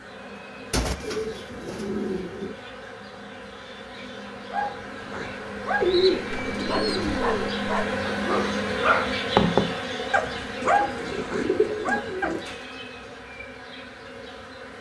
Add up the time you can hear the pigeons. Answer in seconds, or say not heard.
5 s.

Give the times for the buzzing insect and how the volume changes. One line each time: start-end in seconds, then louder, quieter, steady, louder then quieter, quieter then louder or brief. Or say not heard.
0.0-14.7 louder then quieter.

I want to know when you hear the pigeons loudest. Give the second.
6 s.